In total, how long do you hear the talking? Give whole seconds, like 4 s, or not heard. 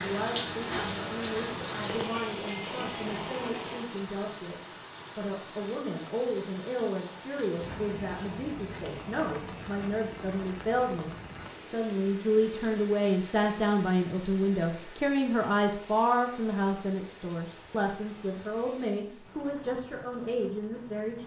21 s.